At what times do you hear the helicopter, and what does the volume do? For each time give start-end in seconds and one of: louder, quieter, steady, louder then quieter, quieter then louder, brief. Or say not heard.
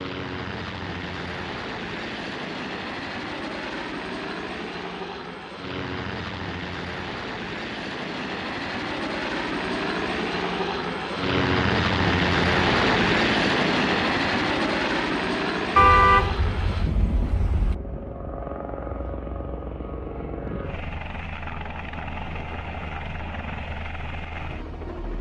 0.0-25.1 louder then quieter.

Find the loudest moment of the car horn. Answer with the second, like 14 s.
16 s.